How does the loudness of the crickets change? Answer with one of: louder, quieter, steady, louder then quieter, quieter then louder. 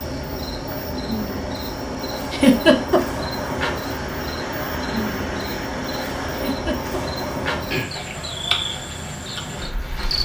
steady.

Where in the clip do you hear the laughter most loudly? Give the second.
3 s.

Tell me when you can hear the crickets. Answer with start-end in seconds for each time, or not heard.
0.0-10.2.